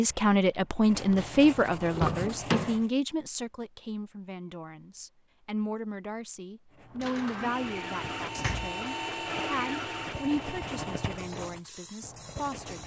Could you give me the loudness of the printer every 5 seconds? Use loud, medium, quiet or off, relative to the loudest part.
off, loud, medium.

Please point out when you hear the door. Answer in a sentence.
You can hear the door from 1.9 to 2.8 s and from 7.0 to 8.8 s.